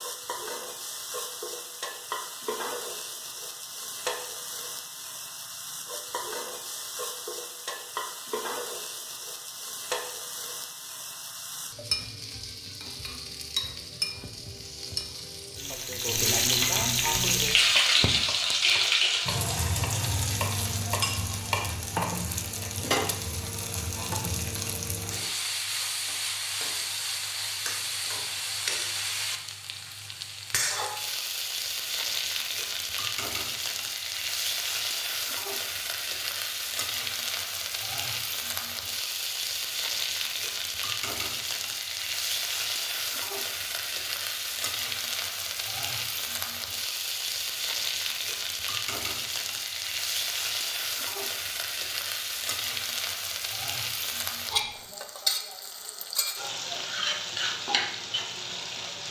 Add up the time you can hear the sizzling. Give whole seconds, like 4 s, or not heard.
59 s.